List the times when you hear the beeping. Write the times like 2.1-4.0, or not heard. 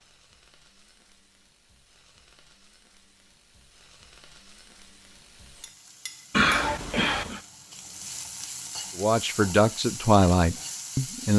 6.3-7.4.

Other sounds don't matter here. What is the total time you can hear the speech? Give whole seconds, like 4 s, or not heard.
2 s.